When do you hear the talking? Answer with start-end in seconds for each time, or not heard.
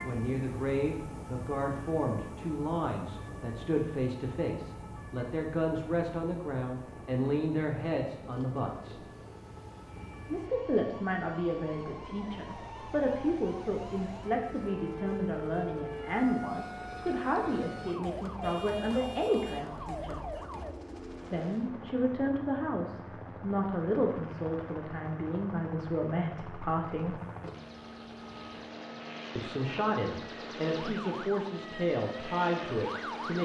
0.0-9.0, 10.2-20.2, 21.3-27.2, 29.4-33.4.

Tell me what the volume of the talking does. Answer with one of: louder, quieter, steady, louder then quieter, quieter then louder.
steady.